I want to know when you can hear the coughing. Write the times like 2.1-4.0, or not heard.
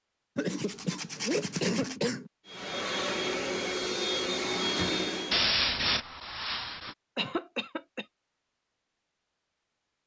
0.3-2.3, 7.2-8.1.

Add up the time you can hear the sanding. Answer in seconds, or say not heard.
3 s.